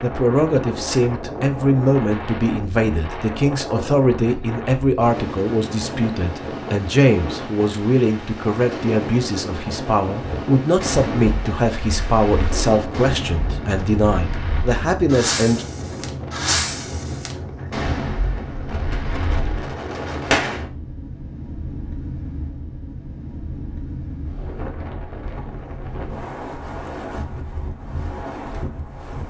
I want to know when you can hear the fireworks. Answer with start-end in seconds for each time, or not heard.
10.2-20.6.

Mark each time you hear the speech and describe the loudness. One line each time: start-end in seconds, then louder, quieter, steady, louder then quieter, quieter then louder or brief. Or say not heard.
0.0-15.7 steady.